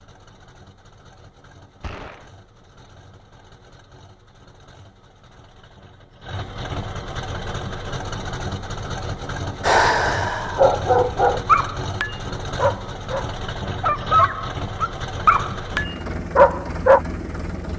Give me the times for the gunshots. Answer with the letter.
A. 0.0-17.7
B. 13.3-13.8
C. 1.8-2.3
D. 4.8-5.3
C.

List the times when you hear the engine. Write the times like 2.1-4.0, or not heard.
0.0-17.7.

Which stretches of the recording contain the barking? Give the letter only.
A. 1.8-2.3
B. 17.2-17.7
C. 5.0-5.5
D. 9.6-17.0
D.